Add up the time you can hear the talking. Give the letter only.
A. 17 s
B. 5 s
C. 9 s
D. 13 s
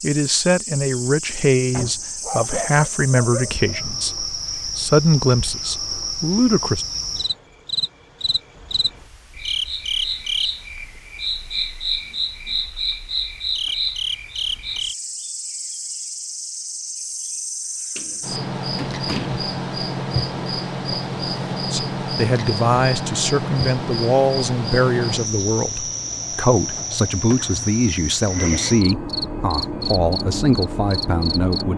A.